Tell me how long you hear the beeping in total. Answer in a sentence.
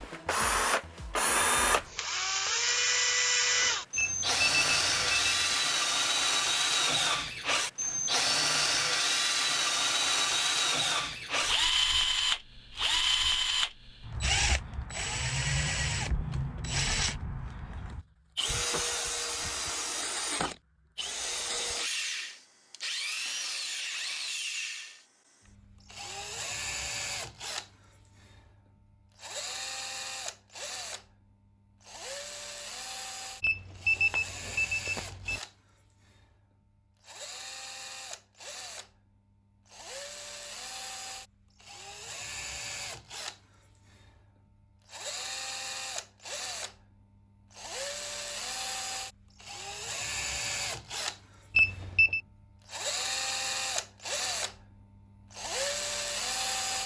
You can hear the beeping for 4 seconds altogether.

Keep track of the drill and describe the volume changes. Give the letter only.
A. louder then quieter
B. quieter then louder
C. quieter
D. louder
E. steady
B.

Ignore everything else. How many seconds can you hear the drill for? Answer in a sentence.
The drill can be heard for 57 seconds in total.